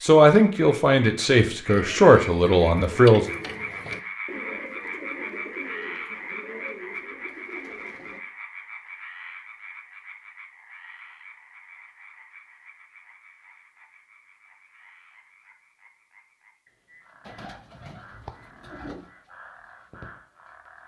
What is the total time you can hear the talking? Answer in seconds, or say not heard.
3 s.